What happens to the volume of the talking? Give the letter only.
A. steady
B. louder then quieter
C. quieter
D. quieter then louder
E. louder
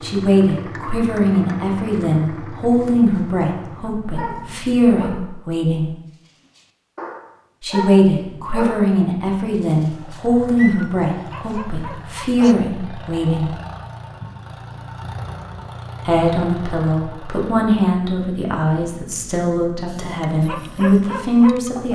A.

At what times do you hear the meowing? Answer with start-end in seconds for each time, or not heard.
not heard.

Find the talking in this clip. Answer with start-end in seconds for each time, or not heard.
0.0-5.9, 7.6-13.6, 16.1-21.9.